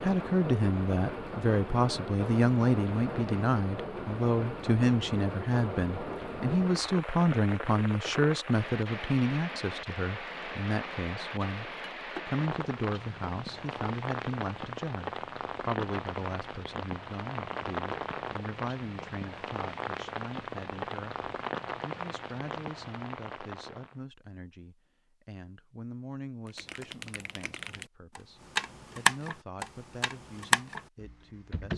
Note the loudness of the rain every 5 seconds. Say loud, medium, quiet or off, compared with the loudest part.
loud, loud, loud, loud, loud, off, off.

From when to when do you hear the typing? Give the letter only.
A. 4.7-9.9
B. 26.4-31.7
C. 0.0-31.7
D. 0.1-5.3
B.